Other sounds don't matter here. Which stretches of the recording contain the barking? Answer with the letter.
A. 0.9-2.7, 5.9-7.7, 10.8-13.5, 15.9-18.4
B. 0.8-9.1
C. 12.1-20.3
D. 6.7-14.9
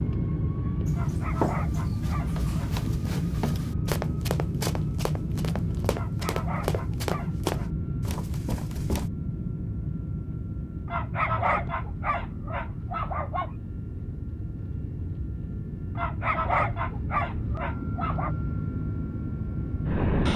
A.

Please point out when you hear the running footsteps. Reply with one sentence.
The running footsteps can be heard from 0.8 to 9.1 s.